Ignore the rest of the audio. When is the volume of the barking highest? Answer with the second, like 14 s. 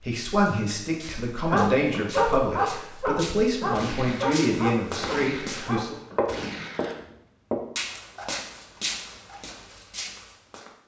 2 s.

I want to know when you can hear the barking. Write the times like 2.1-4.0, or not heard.
1.5-6.7.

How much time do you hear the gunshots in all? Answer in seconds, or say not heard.
3 s.